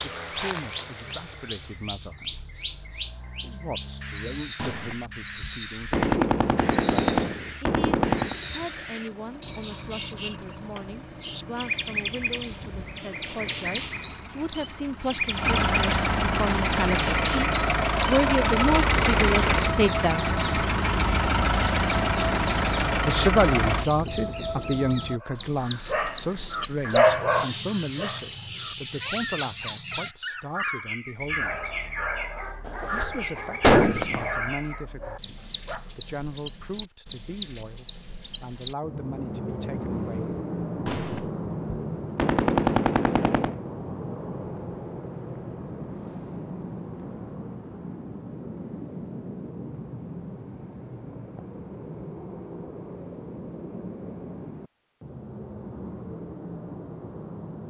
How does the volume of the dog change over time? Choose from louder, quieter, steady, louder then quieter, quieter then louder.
quieter.